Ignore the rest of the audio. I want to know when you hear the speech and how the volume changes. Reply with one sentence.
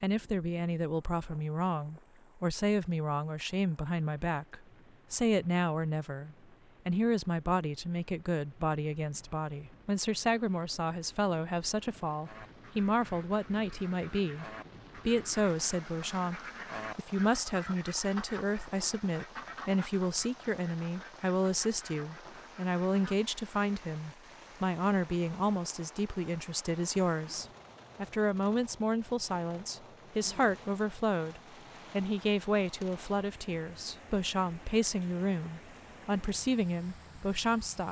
The speech can be heard from 0.0 to 37.8 s, at a steady volume.